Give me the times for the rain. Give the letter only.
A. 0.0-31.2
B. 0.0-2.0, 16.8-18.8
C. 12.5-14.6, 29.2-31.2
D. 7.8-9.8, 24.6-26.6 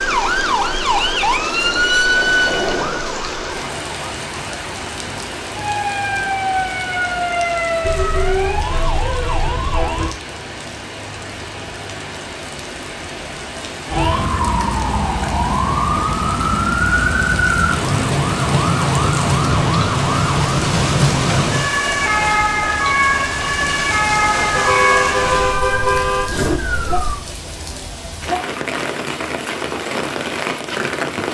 A.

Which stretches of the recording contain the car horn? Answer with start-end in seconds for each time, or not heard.
7.8-9.8, 24.6-26.6.